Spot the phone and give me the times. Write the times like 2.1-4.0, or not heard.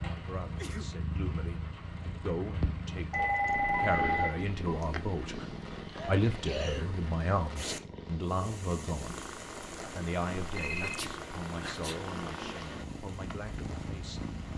3.1-4.8, 10.6-11.0.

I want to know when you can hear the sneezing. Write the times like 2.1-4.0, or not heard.
0.5-0.9, 5.9-6.9, 10.8-12.1.